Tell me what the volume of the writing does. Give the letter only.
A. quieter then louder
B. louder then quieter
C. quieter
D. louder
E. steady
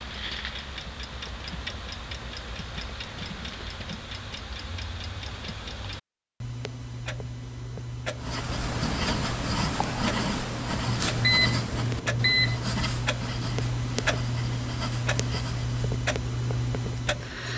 C.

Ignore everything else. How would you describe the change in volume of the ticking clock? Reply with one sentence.
The loudness of the ticking clock goes up.